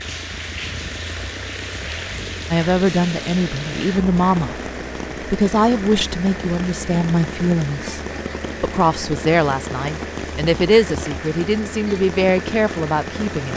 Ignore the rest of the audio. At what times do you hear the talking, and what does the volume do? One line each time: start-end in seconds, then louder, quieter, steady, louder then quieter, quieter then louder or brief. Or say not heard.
2.5-4.6 brief
5.2-8.0 brief
8.6-13.5 steady.